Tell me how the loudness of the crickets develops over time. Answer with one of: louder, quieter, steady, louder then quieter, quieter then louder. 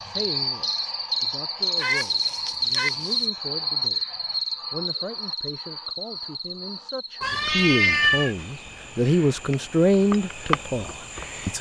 quieter then louder.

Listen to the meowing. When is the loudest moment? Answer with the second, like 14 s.
8 s.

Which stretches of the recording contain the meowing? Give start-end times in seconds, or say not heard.
1.8-3.2, 7.2-8.3.